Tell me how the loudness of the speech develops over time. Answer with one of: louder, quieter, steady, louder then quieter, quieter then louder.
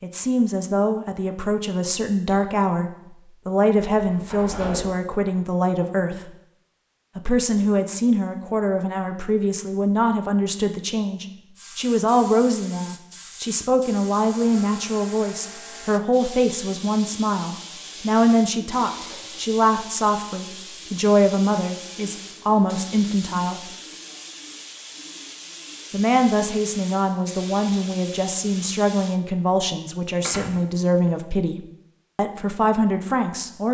steady.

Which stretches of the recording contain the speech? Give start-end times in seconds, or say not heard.
0.0-6.3, 7.2-23.7, 25.9-33.6.